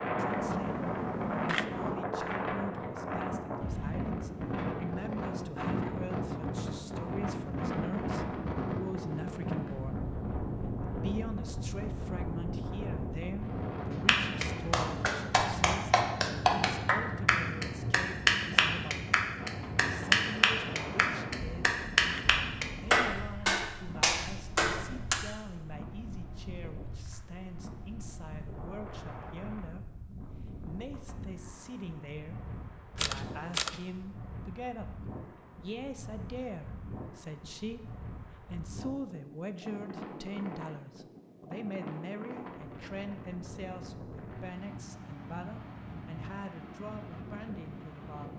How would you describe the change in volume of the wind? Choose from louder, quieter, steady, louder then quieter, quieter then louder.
quieter.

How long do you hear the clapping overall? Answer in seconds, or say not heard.
11 s.